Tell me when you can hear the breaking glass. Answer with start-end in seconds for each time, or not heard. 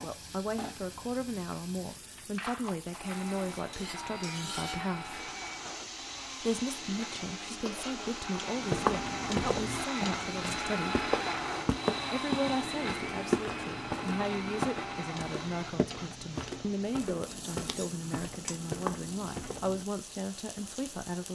not heard.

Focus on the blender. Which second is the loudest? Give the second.
11 s.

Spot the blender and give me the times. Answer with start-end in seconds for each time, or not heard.
2.9-15.8.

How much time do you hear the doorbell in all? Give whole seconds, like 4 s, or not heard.
2 s.